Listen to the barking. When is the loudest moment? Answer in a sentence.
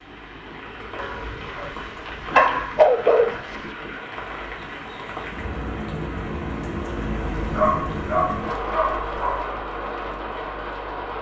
The loudest moment of the barking is at 3 seconds.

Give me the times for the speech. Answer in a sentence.
The speech can't be heard in this clip.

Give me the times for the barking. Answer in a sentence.
The barking can be heard from 0.9 to 3.4 s and from 7.5 to 9.4 s.